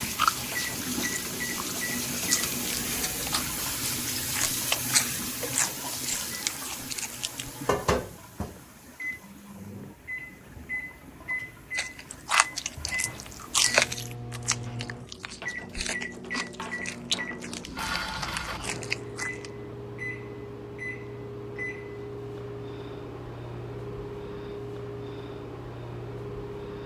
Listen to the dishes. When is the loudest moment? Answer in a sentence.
The loudest moment of the dishes is at 18 seconds.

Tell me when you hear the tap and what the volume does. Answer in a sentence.
The tap can be heard from 0.0 to 14.2 s, getting quieter.